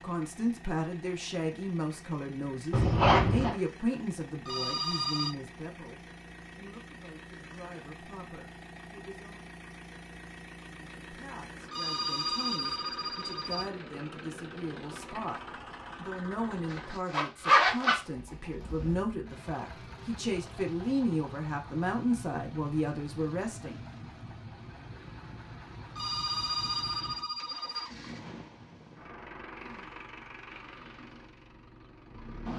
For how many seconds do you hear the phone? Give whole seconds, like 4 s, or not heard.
5 s.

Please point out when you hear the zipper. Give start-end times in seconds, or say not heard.
2.7-3.5, 16.7-18.0.